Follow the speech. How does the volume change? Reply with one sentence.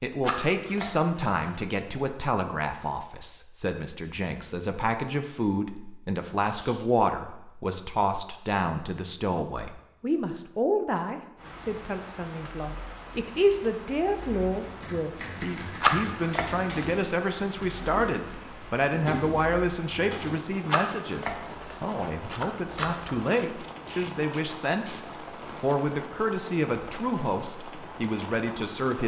The loudness of the speech stays about the same.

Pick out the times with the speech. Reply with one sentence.
The speech can be heard from 0.0 to 24.9 s and from 25.6 to 29.0 s.